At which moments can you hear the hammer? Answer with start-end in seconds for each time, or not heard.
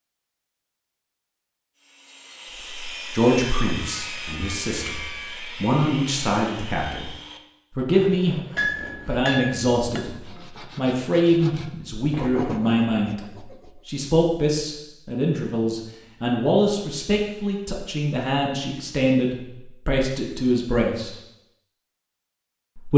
8.6-10.3.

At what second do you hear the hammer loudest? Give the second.
9 s.